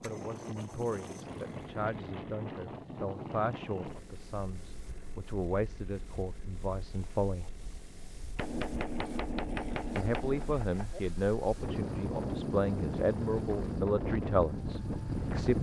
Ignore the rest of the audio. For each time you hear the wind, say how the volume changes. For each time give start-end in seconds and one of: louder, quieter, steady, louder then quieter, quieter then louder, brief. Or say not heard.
0.0-15.5 quieter then louder.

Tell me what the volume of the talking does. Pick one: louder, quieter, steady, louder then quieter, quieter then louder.
louder.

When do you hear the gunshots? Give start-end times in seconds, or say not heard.
8.3-11.0.